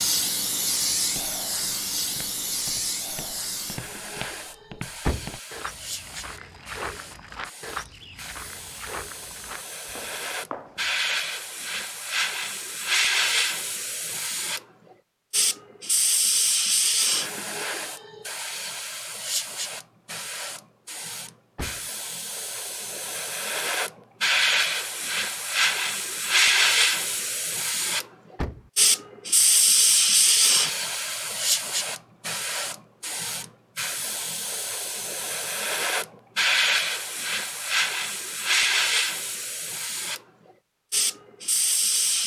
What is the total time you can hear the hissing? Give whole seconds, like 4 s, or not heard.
42 s.